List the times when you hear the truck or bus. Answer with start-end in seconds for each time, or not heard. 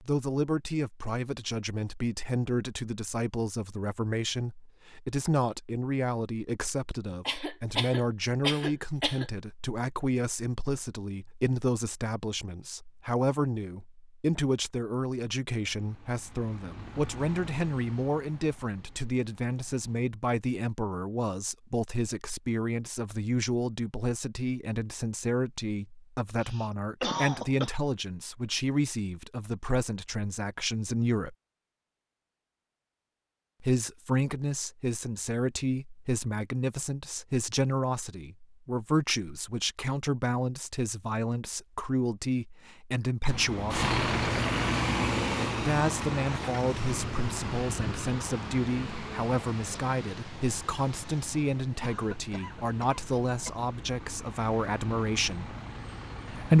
15.6-20.1, 43.2-56.5.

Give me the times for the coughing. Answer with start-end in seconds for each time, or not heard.
7.1-9.2, 26.4-27.8, 51.8-53.5.